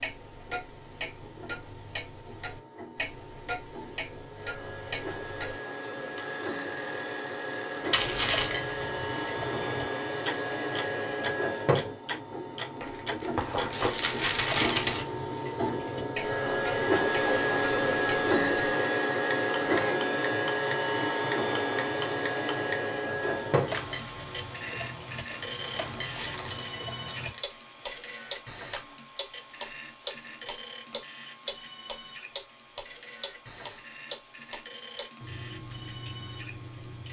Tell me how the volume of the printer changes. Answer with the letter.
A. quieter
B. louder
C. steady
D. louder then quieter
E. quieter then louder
D.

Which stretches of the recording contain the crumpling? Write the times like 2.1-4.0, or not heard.
7.9-8.6, 12.8-15.1, 26.1-27.5.